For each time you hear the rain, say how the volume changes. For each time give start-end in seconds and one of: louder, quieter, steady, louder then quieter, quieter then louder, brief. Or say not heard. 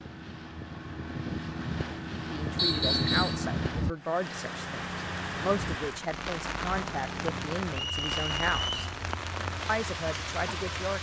4.0-10.9 steady.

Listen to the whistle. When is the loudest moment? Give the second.
3 s.